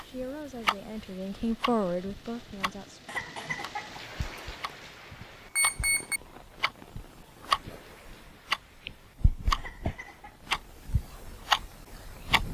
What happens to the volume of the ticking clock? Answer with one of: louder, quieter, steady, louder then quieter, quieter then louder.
quieter then louder.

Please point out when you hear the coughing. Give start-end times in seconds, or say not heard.
3.0-4.0, 9.6-10.3.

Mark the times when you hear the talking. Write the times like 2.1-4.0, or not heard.
0.0-3.0.